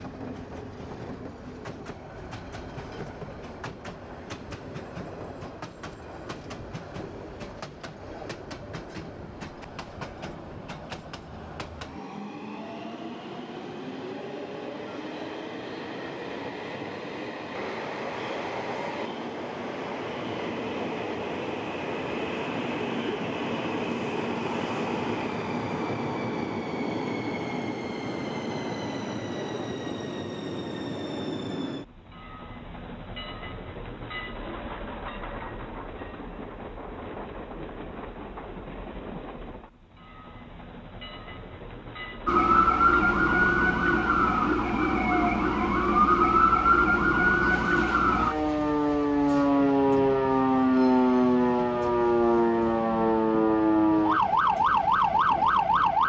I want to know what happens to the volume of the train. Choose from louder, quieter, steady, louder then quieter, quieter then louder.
louder then quieter.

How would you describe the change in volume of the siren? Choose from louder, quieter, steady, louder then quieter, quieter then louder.
steady.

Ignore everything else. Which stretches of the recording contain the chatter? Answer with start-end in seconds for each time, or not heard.
not heard.